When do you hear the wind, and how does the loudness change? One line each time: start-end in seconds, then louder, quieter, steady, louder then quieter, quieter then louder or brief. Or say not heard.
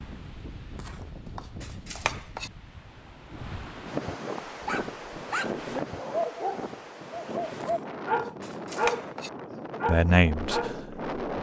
0.0-11.3 louder.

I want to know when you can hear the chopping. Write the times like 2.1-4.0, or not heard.
0.8-2.5, 7.6-9.3.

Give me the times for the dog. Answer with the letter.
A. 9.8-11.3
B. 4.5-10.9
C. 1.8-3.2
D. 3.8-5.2
B.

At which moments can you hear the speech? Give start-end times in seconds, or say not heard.
9.8-11.3.